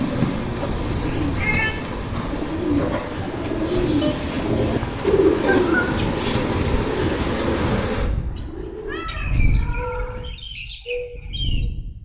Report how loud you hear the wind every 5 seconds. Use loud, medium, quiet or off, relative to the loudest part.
loud, loud, medium.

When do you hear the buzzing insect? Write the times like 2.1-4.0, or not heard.
0.0-8.1.